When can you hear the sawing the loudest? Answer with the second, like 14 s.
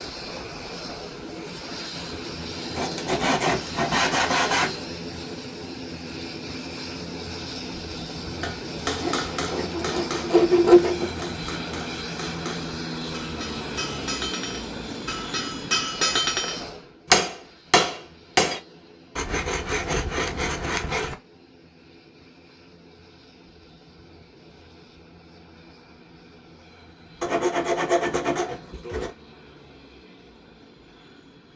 11 s.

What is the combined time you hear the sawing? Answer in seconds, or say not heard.
8 s.